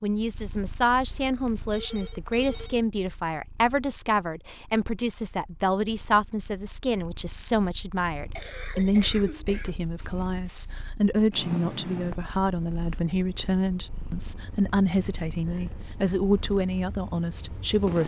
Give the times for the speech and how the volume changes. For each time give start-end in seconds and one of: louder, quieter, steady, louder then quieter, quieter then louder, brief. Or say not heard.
0.0-18.0 steady.